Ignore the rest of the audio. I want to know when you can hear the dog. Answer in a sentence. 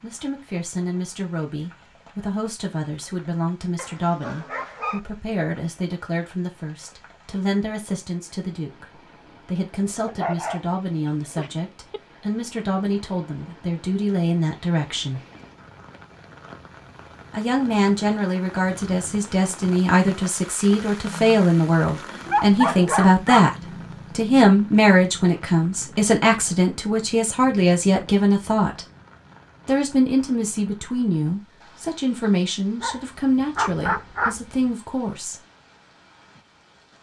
You can hear the dog from 3.8 to 5.0 s, from 10.1 to 12.0 s, from 22.2 to 23.5 s and from 32.8 to 34.4 s.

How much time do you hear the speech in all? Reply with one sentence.
The speech can be heard for 32 seconds in total.